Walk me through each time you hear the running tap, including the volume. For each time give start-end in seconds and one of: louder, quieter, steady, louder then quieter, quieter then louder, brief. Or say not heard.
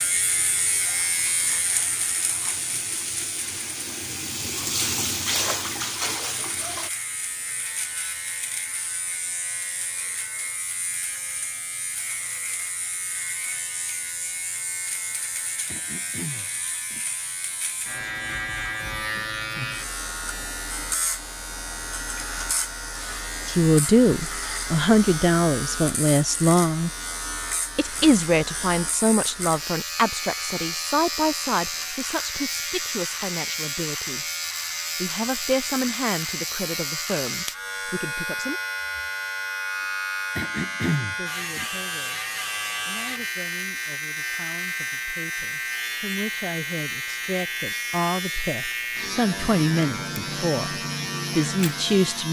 0.0-6.9 louder.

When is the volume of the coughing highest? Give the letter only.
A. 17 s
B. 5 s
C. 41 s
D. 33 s
C.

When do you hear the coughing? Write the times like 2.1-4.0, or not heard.
15.7-17.0, 40.4-41.6.